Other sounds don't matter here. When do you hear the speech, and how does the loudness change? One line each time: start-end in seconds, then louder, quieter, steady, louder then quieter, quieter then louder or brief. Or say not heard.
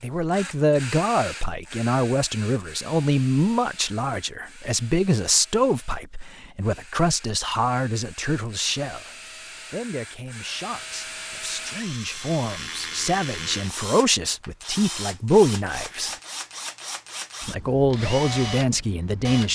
0.0-16.1 quieter then louder
17.4-19.4 brief.